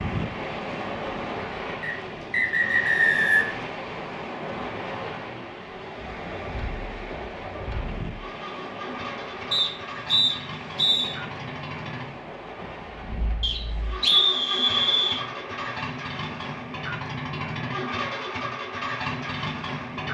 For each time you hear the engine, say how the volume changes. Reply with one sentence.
The engine can be heard from 0.0 to 20.0 s, getting louder.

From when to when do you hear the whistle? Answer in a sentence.
The whistle can be heard from 1.8 to 3.5 s, from 9.5 to 11.2 s and from 13.4 to 15.2 s.